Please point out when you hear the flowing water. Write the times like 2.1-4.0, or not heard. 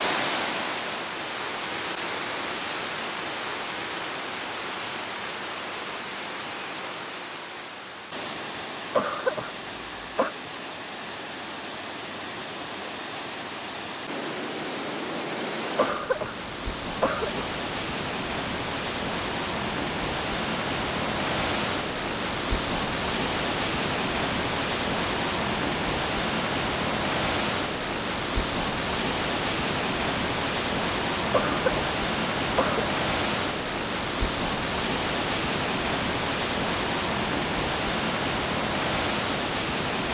0.0-40.0.